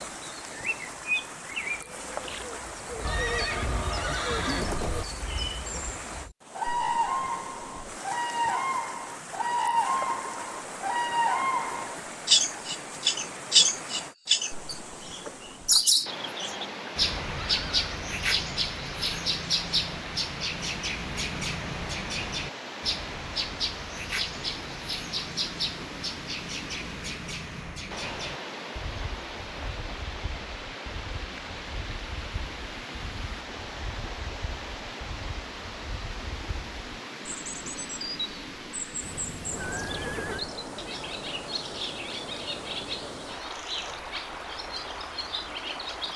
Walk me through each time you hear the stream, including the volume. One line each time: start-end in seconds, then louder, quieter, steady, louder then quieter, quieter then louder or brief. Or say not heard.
0.0-46.1 steady.